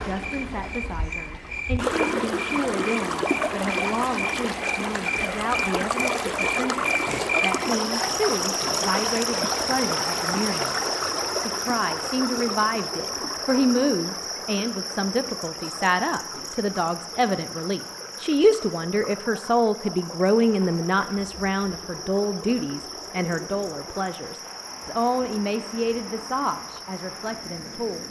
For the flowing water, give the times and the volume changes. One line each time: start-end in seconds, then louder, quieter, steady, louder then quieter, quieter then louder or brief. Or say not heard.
0.0-28.0 quieter.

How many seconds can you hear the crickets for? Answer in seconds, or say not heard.
28 s.